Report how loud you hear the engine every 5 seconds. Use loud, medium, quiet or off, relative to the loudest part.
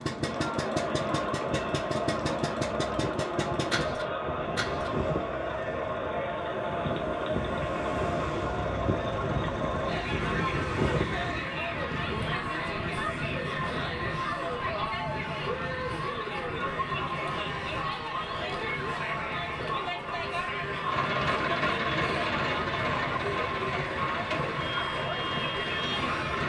loud, medium, medium, off, loud, loud.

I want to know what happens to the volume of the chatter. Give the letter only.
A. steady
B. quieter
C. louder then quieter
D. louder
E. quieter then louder
A.